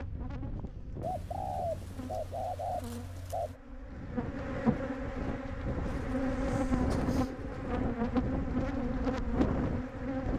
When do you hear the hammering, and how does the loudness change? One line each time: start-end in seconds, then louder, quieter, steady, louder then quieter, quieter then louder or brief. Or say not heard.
not heard.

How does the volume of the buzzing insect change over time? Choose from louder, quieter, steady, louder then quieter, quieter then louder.
louder.